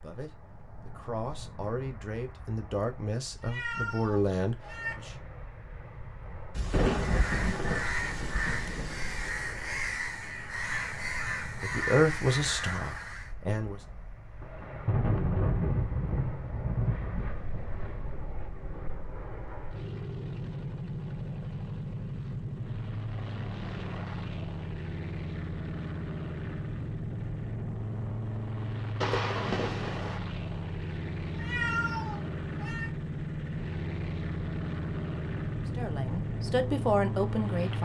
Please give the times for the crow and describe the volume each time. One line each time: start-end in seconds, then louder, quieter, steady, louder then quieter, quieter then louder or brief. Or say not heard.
7.0-13.3 steady.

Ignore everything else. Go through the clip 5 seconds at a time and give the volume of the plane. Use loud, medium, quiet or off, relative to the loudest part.
quiet, quiet, quiet, medium, loud, loud, loud, loud.